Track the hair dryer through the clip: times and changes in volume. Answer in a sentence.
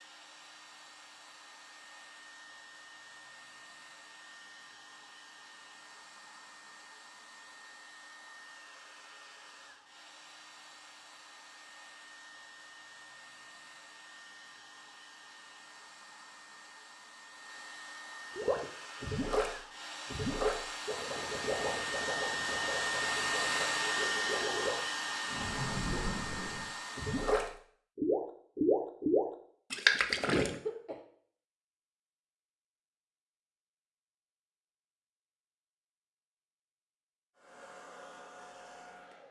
You can hear the hair dryer from 0.0 to 27.6 s, getting louder; and briefly from 37.4 to 39.2 s.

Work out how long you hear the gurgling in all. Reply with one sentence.
You can hear the gurgling for 12 seconds altogether.